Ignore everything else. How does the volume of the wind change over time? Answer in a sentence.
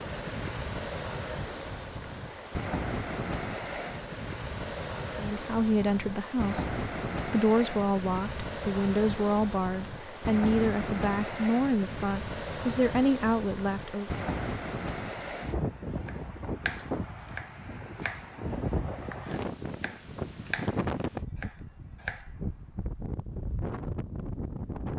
The volume of the wind stays about the same.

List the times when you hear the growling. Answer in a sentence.
You can't hear the growling here.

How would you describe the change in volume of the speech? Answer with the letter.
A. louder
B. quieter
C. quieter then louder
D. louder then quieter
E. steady
E.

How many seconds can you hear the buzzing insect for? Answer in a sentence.
The buzzing insect can't be heard in this clip.